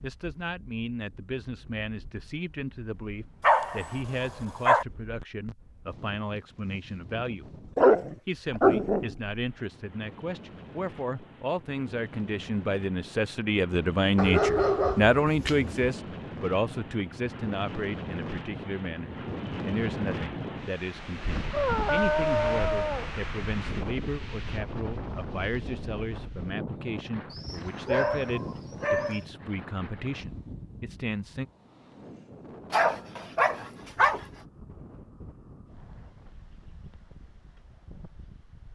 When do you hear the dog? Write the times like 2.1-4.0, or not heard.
3.4-4.8, 7.8-9.1, 14.2-15.9, 21.5-23.1, 27.3-29.2, 32.7-34.2.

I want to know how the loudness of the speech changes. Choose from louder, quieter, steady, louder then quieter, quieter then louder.
louder then quieter.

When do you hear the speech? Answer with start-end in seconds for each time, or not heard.
0.0-7.6, 8.2-31.4.